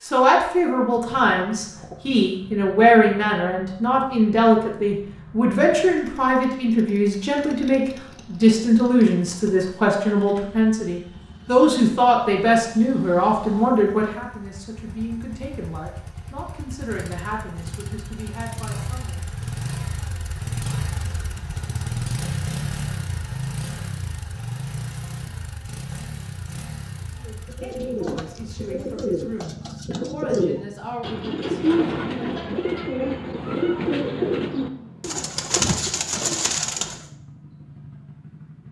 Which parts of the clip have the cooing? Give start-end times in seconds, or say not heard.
27.4-37.0.